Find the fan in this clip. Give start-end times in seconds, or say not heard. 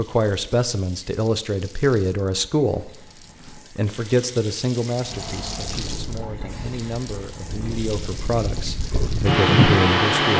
5.0-10.3.